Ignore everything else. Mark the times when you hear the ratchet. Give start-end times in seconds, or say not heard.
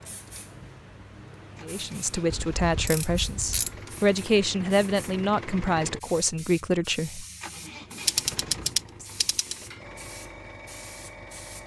2.3-3.8, 8.1-9.6.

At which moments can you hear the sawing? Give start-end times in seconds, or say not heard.
not heard.